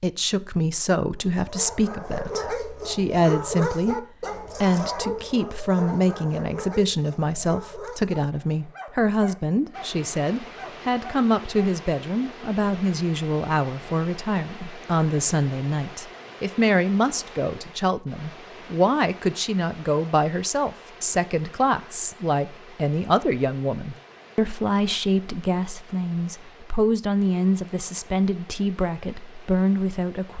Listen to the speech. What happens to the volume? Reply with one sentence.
The volume of the speech stays about the same.